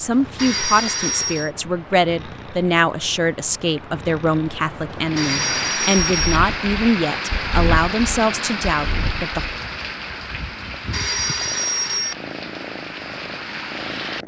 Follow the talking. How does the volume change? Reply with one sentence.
The loudness of the talking stays about the same.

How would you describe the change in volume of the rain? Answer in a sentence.
The volume of the rain goes down.